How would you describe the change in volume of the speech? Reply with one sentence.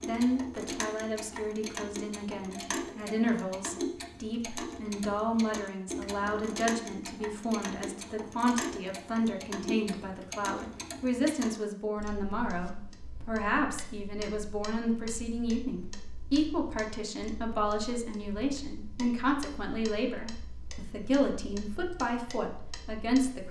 The volume of the speech stays about the same.